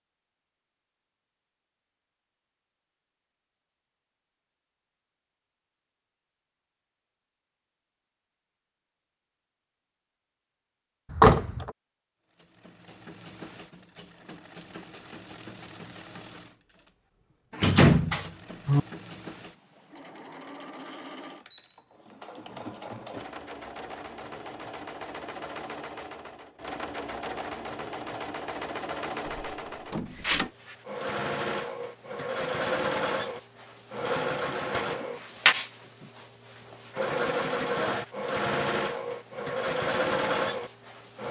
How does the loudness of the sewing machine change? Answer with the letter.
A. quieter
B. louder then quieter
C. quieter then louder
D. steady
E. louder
E.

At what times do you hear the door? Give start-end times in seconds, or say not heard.
11.1-11.7, 17.6-18.8, 29.2-30.5.